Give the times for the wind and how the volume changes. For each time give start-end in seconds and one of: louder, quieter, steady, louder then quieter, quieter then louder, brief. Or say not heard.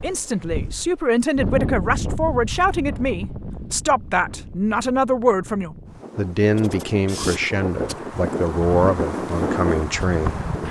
0.0-10.6 quieter then louder.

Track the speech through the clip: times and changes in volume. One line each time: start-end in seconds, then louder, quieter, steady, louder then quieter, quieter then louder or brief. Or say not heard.
0.0-10.4 steady.